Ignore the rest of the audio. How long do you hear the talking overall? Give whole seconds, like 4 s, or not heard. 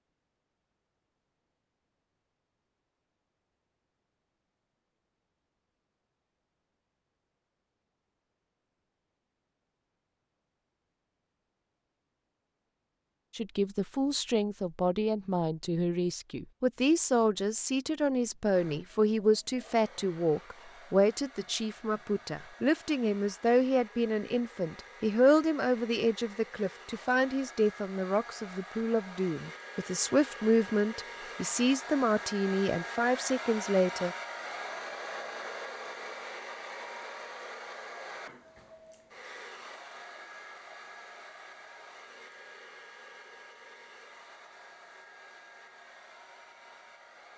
21 s.